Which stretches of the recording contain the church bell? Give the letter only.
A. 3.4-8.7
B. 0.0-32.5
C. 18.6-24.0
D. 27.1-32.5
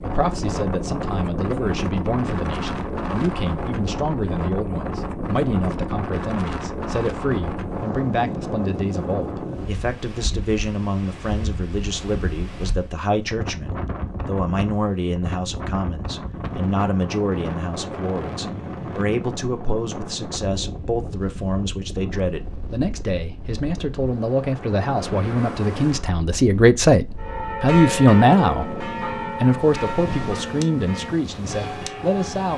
D.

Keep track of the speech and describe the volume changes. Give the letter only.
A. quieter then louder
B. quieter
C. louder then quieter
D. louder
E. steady
D.